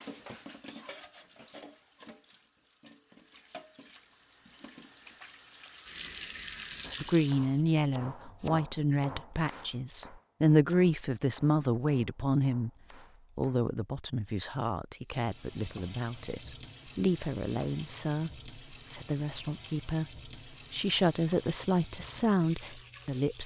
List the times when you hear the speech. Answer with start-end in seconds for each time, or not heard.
7.0-12.7, 13.3-23.4.